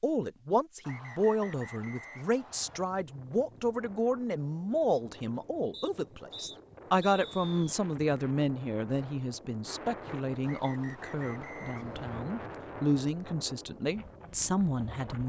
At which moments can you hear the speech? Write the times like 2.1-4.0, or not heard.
0.0-15.2.